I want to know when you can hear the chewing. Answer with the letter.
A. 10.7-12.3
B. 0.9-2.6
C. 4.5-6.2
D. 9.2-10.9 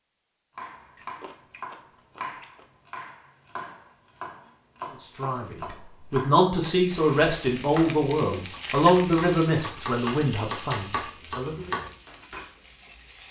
B.